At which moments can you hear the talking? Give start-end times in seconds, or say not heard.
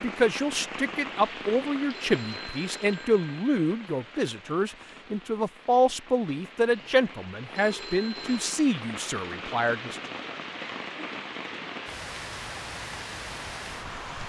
0.0-9.9.